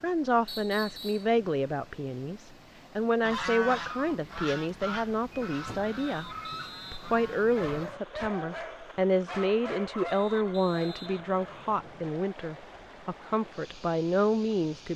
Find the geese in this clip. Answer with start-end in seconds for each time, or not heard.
3.2-8.3.